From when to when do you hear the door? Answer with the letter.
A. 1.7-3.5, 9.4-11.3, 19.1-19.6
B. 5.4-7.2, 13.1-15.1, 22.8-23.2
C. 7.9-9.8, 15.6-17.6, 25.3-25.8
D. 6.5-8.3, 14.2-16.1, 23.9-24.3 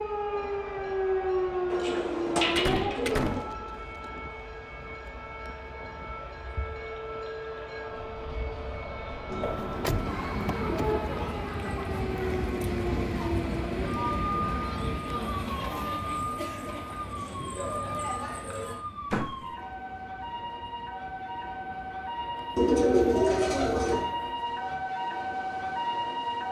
A.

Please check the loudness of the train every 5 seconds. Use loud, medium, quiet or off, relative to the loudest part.
quiet, quiet, loud, medium, quiet, quiet.